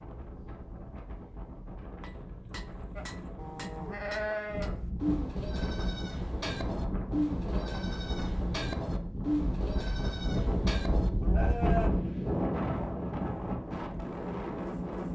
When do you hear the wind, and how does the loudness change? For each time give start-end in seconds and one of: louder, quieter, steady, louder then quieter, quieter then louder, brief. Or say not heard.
0.0-15.0 louder.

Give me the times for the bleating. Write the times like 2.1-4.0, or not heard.
3.0-11.9.